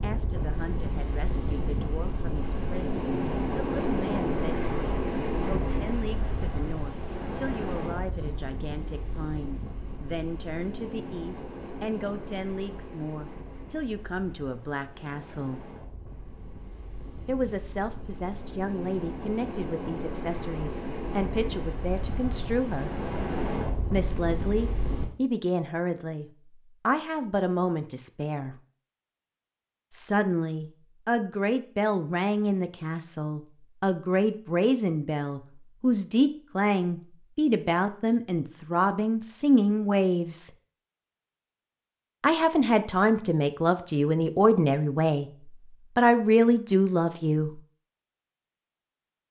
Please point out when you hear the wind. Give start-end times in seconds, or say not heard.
0.0-25.1.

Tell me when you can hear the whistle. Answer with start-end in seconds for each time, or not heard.
not heard.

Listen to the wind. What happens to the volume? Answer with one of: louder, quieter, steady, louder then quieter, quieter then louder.
quieter then louder.